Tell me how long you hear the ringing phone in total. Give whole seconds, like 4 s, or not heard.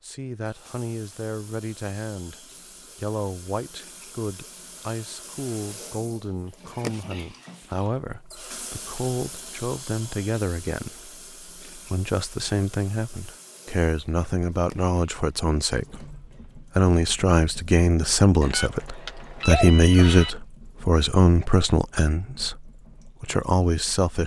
2 s.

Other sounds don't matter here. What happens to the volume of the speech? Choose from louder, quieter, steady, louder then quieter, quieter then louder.
louder.